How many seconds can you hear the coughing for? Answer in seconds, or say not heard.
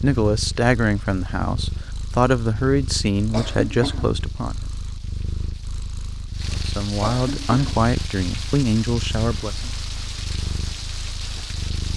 2 s.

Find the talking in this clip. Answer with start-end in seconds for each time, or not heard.
0.0-4.7, 6.5-9.7.